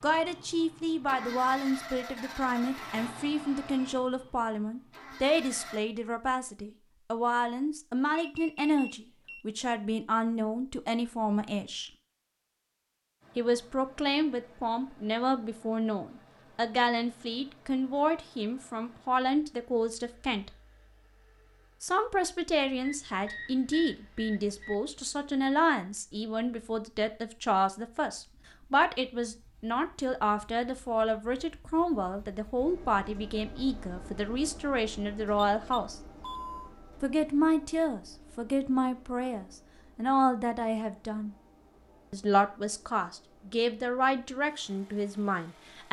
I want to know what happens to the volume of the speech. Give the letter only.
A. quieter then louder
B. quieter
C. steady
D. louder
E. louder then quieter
C.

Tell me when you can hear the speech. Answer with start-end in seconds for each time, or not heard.
0.0-11.9, 13.3-20.5, 21.8-36.0, 37.0-41.4, 42.1-45.8.